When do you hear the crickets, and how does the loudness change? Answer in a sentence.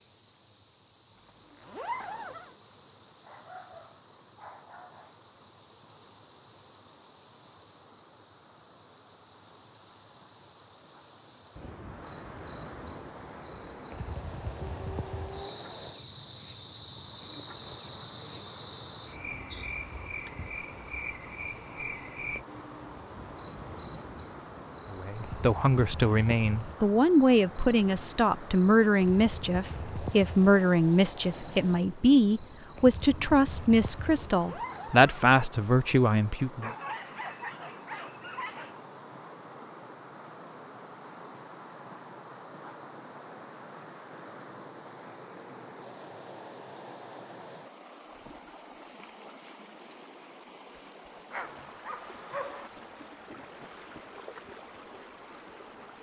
The crickets can be heard from 0.0 to 35.0 s, getting quieter.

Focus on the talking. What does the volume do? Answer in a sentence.
The loudness of the talking stays about the same.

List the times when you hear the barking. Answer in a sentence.
The barking can be heard from 3.2 to 5.2 s, from 14.6 to 15.7 s, from 36.6 to 38.8 s and from 51.3 to 52.7 s.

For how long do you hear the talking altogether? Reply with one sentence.
The talking can be heard for 12 seconds in total.